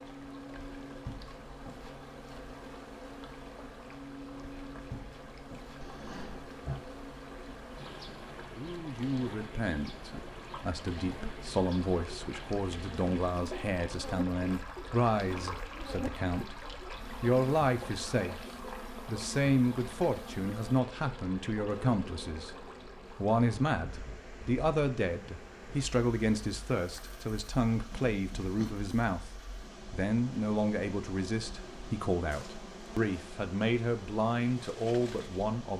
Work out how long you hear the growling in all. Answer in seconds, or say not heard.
2 s.